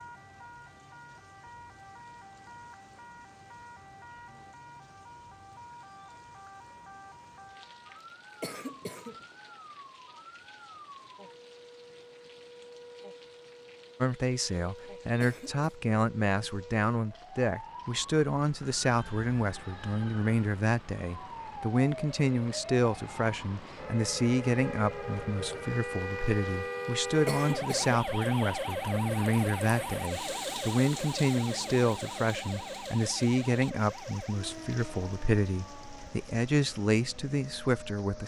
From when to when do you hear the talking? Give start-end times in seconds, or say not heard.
14.0-38.2.